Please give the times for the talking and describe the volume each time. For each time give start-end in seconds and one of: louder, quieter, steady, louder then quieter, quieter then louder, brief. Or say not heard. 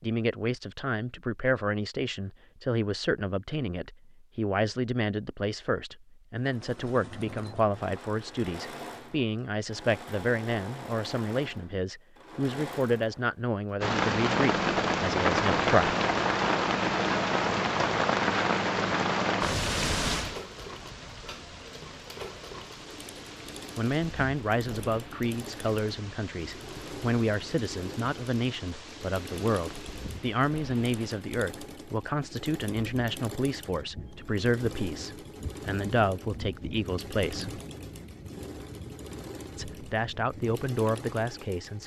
0.0-15.9 steady
23.8-37.6 steady
39.5-41.8 brief.